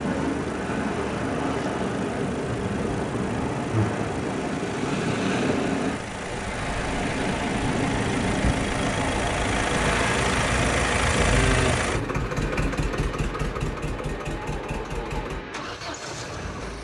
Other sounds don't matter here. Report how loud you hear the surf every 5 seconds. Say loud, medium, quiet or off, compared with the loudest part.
loud, loud, medium, quiet.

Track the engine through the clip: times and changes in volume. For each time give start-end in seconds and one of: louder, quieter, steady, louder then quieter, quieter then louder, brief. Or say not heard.
0.0-16.8 louder then quieter.